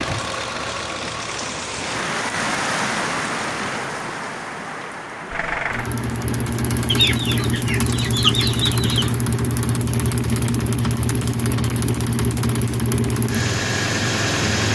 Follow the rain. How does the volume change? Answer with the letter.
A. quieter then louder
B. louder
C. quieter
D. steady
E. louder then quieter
C.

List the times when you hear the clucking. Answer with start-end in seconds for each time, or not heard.
6.8-9.1.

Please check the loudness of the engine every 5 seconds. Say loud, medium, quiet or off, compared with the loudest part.
medium, loud, loud.